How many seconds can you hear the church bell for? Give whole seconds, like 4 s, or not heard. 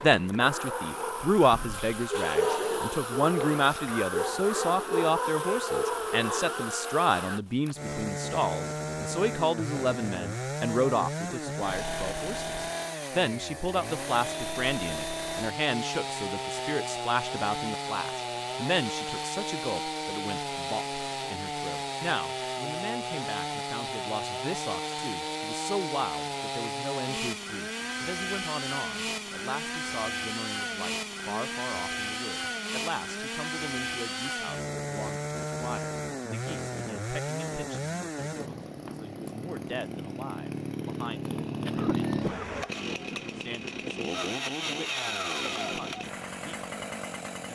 not heard.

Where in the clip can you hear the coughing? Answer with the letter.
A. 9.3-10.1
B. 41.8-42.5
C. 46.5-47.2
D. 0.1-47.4
B.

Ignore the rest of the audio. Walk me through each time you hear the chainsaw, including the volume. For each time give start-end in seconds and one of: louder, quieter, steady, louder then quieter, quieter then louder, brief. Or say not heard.
0.1-47.4 steady.